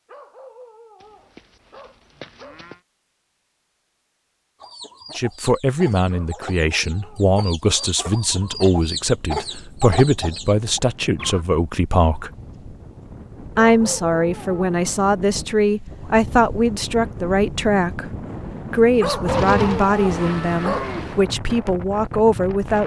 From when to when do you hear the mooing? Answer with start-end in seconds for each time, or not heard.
1.0-2.8, 19.2-21.1.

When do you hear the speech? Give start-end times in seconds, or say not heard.
5.2-12.3, 13.6-18.1, 18.6-22.8.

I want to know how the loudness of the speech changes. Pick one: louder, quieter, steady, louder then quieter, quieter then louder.
steady.